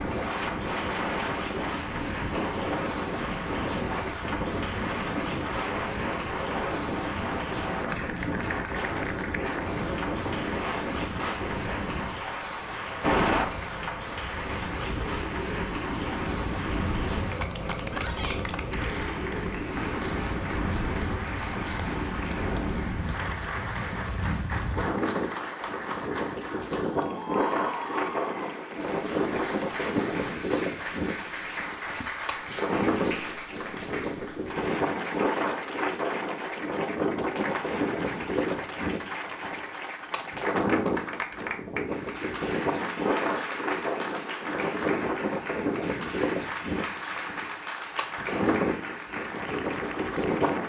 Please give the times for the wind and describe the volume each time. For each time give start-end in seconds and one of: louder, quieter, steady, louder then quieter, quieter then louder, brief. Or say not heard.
0.0-50.6 steady.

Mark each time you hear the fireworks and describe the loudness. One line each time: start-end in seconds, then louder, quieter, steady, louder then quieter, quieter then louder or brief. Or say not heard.
not heard.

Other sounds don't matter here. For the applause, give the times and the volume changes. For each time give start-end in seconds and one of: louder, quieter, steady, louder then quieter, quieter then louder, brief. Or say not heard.
0.0-50.6 steady.